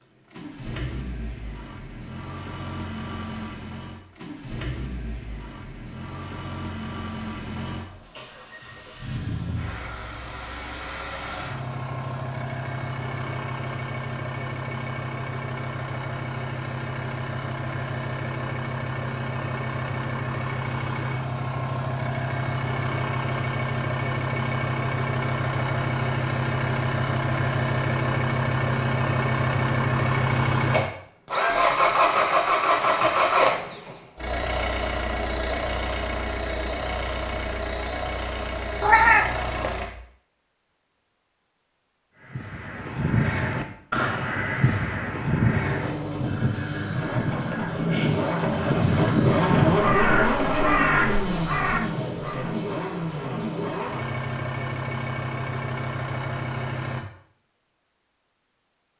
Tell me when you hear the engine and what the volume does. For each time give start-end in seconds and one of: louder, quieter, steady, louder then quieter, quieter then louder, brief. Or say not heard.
0.0-39.9 louder
45.5-57.0 louder then quieter.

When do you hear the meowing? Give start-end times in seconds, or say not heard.
38.8-39.8.